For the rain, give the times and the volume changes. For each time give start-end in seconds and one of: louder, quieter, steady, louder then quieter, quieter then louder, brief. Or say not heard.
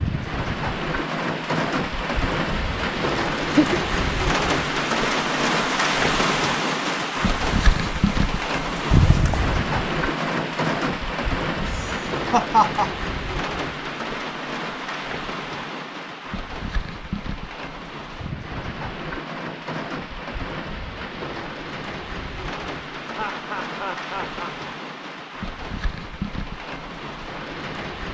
0.0-28.0 quieter.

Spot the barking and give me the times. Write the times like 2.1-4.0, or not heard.
not heard.